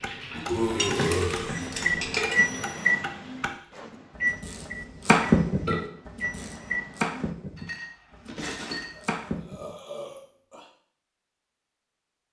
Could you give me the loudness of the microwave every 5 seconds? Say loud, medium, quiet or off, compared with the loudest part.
loud, medium, off.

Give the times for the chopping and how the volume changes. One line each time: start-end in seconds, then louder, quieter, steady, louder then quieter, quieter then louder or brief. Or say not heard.
0.0-9.8 louder then quieter.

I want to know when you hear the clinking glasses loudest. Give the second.
2 s.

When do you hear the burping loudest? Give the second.
1 s.